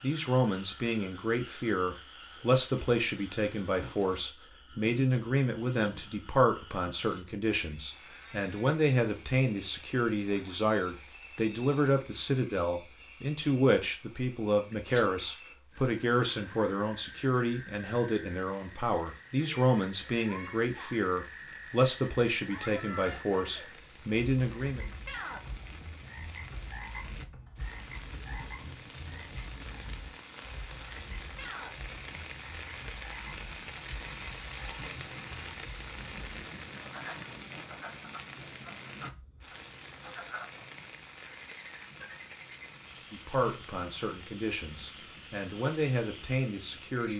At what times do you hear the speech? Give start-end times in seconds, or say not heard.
0.0-24.8, 43.1-47.1.